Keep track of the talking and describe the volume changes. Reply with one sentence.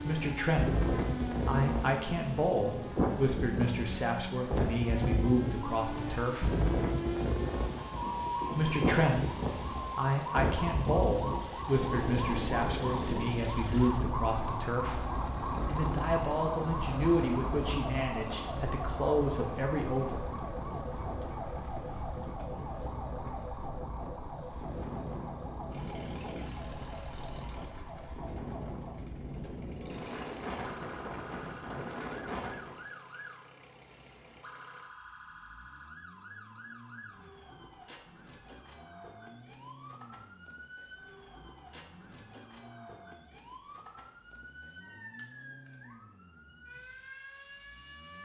The volume of the talking stays about the same.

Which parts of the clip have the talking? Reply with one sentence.
The talking can be heard from 0.0 to 6.5 s, from 8.5 to 15.1 s and from 15.7 to 20.2 s.